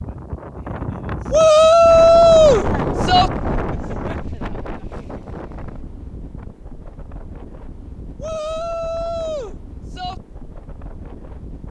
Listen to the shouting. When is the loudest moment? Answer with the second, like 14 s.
2 s.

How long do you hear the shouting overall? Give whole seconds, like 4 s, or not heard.
4 s.